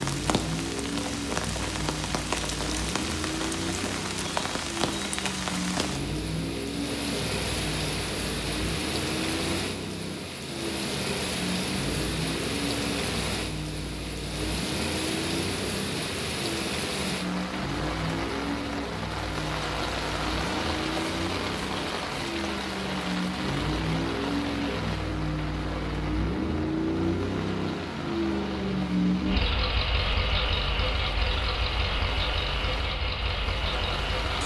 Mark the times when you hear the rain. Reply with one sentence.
You can hear the rain from 0.0 to 34.4 s.